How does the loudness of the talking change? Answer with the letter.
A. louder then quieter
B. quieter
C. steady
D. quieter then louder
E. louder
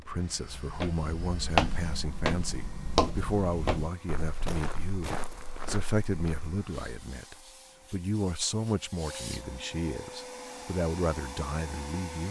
C.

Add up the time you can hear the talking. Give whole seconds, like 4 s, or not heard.
12 s.